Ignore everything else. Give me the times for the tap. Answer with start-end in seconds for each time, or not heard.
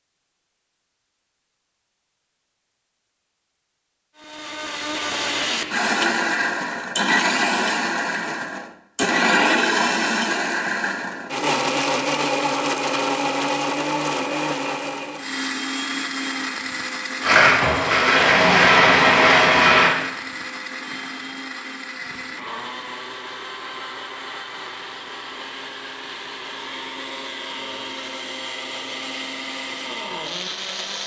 17.2-19.9.